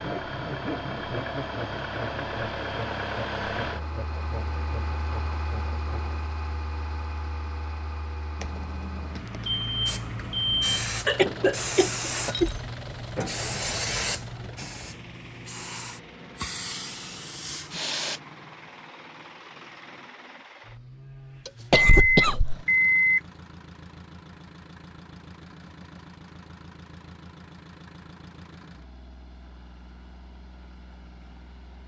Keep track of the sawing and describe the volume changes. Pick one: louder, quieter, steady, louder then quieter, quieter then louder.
quieter.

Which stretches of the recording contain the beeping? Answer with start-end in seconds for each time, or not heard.
8.4-10.9, 21.4-23.2.